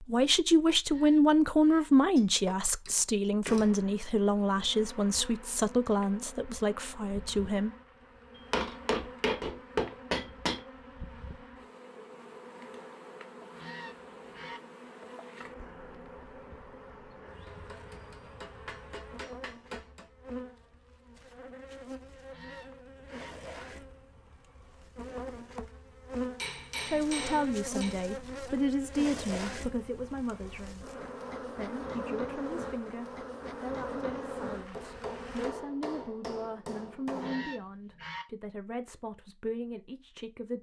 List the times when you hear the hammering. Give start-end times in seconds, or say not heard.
2.1-3.8, 8.3-10.6, 17.4-20.1, 26.4-28.1, 34.7-37.5.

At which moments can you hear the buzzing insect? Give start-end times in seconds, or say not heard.
3.5-35.5.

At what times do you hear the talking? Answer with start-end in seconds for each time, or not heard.
0.0-7.8, 26.9-40.5.